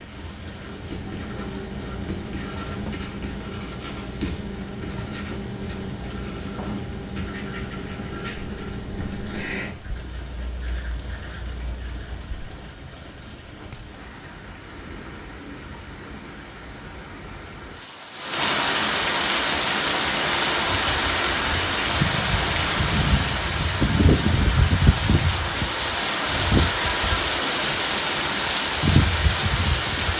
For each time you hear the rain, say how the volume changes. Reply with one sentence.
The rain can be heard from 0.0 to 30.1 s, getting louder.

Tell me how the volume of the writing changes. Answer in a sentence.
The volume of the writing goes down.